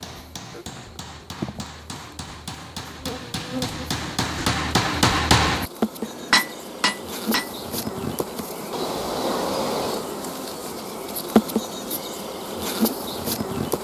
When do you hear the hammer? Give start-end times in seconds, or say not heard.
0.0-7.7.